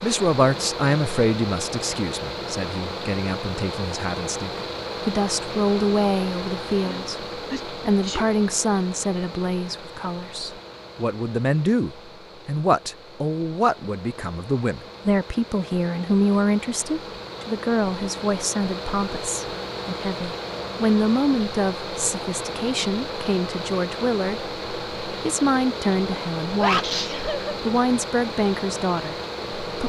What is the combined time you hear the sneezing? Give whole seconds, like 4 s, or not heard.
3 s.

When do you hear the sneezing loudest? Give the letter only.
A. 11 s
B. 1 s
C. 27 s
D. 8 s
C.